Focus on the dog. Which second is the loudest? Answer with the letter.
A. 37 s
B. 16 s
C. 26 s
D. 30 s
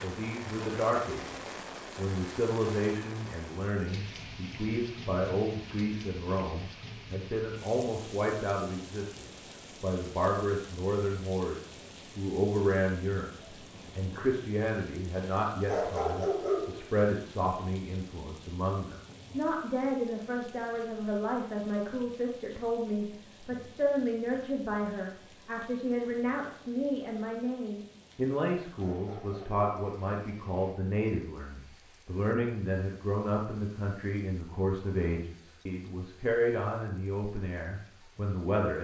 B.